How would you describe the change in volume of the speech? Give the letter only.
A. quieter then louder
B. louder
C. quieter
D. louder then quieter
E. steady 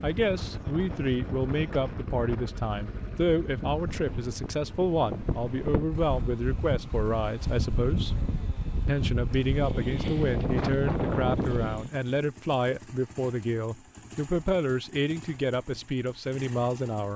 E.